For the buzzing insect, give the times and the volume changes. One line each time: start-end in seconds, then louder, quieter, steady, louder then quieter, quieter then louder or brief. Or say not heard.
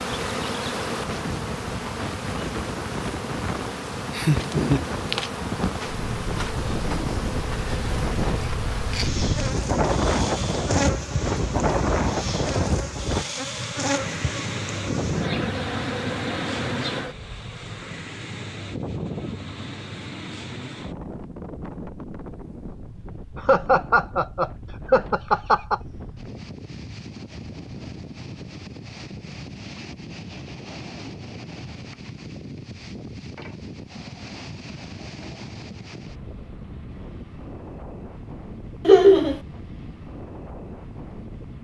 0.0-17.9 steady.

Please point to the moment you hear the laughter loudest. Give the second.
39 s.